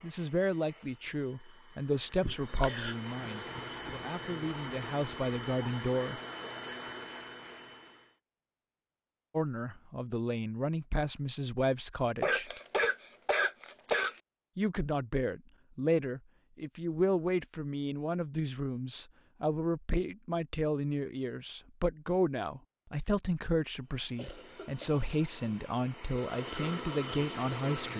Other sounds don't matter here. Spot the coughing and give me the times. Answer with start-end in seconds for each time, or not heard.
2.2-3.0, 12.2-14.2, 24.1-25.1.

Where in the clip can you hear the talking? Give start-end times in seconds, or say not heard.
0.0-6.2, 9.3-12.5, 14.6-27.9.